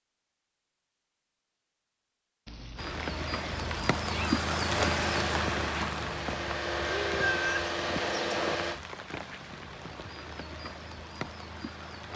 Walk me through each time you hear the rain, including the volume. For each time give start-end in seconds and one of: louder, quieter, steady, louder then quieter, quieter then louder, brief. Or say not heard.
2.8-12.1 quieter.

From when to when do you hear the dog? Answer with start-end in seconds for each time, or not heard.
not heard.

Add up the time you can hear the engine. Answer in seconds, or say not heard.
4 s.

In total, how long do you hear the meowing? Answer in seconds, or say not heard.
4 s.